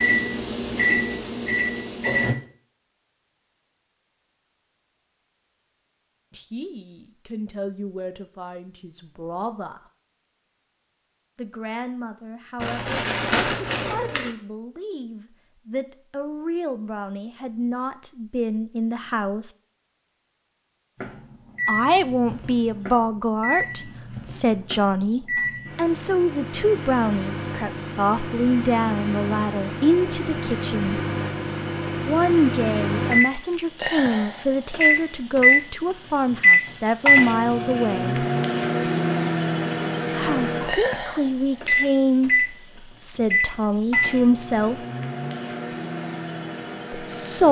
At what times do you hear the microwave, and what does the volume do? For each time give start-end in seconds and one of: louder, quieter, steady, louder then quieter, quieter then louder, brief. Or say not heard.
0.0-2.4 brief
21.0-47.4 louder then quieter.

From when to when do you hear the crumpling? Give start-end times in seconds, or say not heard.
12.6-14.3.